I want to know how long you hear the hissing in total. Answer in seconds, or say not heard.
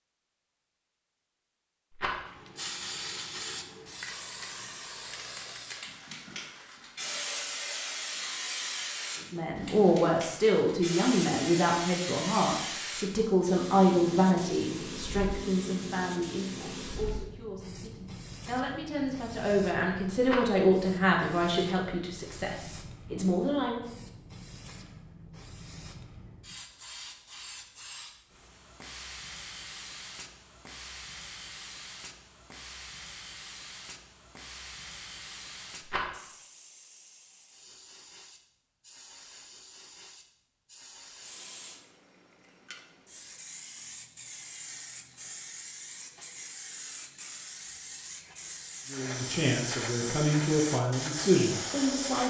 50 s.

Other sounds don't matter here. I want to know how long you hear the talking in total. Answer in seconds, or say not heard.
18 s.